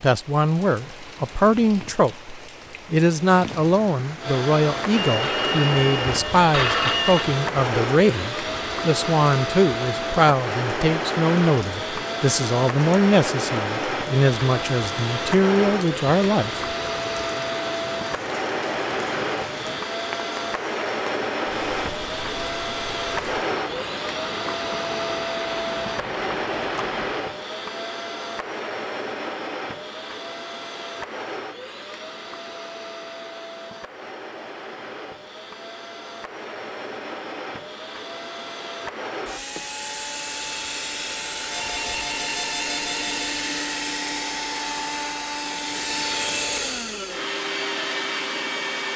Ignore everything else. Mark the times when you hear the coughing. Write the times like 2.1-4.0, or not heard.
not heard.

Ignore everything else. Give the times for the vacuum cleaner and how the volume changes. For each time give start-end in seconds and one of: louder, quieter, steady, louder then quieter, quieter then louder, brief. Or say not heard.
4.2-48.9 quieter then louder.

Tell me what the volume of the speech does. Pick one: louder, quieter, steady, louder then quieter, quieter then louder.
steady.